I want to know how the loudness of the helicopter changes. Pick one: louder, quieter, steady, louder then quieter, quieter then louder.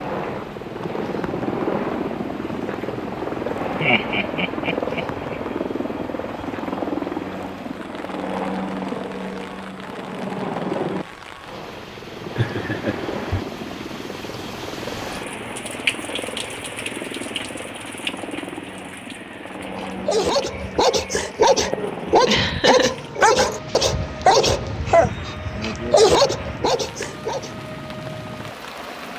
quieter.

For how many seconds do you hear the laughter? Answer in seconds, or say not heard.
4 s.